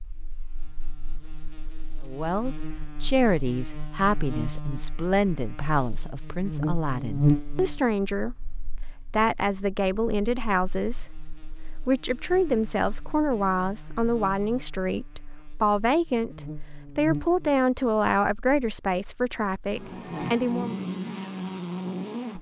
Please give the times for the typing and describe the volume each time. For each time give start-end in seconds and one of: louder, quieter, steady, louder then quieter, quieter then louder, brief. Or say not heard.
not heard.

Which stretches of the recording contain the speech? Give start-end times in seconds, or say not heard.
2.0-20.8.